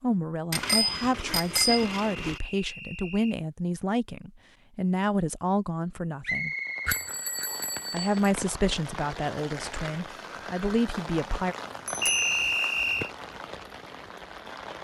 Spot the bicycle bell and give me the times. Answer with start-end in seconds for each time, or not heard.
0.5-2.4, 6.8-8.3, 11.8-12.5.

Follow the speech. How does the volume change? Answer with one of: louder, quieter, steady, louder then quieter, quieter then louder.
steady.